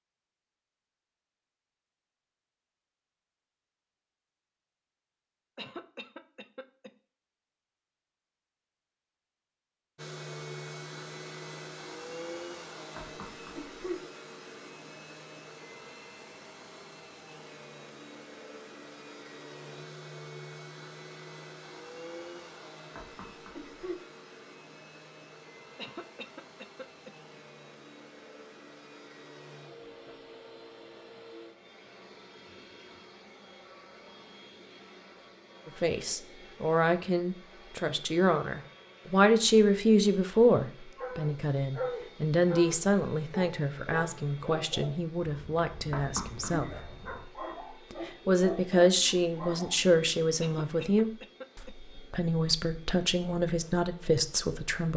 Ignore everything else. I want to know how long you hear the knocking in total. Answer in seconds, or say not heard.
3 s.